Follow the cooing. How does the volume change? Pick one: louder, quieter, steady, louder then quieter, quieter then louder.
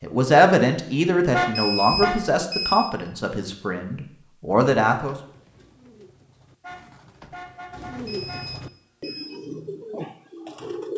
louder.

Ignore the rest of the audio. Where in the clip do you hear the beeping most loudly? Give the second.
2 s.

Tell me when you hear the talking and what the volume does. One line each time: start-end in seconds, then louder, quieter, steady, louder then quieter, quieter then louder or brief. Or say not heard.
0.0-5.2 quieter then louder.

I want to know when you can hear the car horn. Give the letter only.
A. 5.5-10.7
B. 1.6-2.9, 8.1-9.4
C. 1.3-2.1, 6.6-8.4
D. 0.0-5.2
C.